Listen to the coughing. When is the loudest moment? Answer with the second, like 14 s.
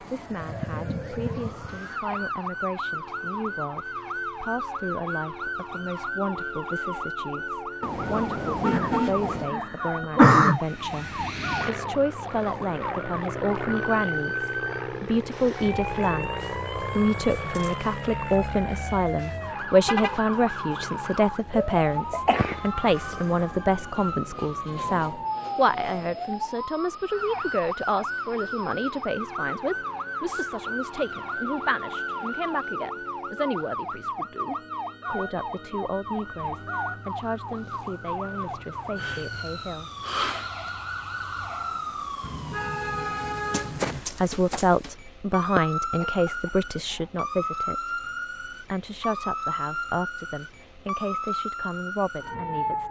10 s.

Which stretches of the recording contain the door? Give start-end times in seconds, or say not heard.
not heard.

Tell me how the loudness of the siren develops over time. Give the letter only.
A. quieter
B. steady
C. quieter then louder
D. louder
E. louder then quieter
B.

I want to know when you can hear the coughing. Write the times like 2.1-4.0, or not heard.
8.7-10.6, 22.1-23.4, 45.5-46.0.